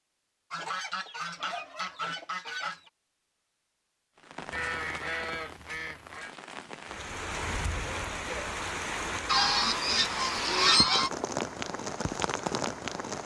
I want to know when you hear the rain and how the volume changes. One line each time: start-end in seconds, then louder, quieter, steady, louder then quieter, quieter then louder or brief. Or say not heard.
4.2-13.2 louder.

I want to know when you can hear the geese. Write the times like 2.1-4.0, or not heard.
0.5-2.9, 4.5-6.3, 9.2-11.1.